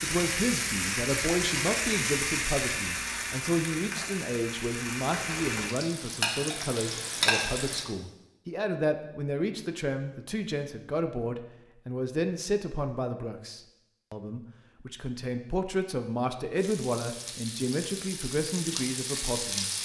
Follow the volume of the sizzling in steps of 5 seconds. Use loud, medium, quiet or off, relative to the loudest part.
loud, loud, off, medium.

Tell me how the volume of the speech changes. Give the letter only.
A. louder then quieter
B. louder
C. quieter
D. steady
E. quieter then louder
D.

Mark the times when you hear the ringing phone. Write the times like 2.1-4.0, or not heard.
not heard.